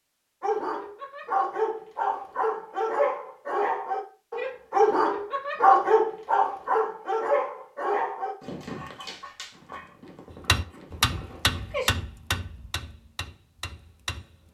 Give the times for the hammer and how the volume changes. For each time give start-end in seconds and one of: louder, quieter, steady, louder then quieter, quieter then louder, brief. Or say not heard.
10.3-14.4 quieter.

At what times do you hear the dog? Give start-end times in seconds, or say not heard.
0.4-11.9.